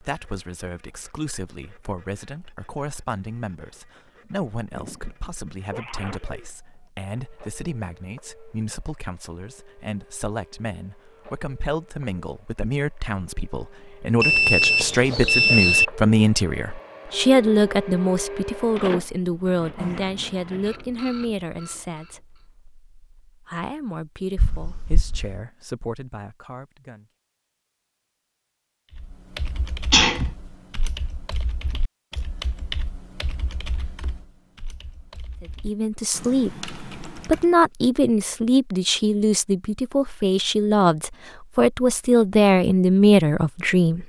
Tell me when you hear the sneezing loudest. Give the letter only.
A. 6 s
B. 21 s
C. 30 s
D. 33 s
C.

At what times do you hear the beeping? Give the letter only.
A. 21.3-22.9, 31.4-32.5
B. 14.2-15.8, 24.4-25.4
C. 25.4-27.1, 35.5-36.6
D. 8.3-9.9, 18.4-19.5
B.